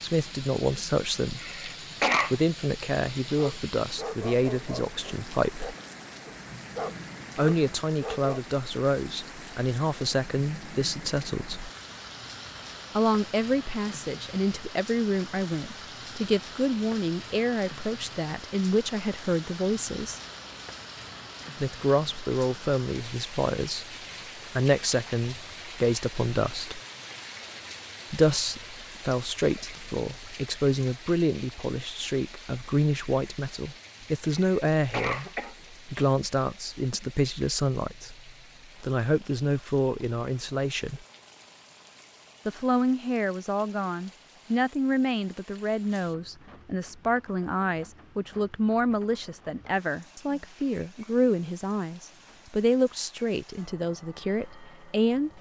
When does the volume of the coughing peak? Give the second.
2 s.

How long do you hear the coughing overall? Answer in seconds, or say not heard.
3 s.